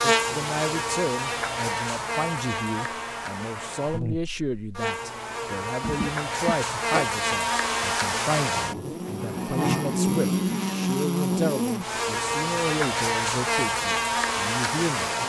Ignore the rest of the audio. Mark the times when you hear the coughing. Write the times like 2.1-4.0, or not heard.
5.8-7.1.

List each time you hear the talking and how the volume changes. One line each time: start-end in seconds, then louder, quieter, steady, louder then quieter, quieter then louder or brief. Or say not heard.
0.0-15.1 steady.